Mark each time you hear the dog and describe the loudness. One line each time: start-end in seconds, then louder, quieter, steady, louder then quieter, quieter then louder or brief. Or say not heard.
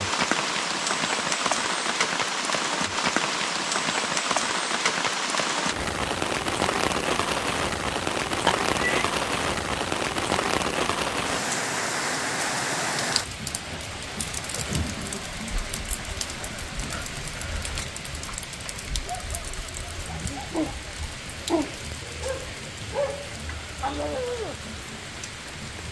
19.1-24.6 louder.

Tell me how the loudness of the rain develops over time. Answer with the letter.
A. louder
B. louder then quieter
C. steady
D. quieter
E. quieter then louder
D.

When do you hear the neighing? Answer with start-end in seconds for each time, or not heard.
8.4-9.1.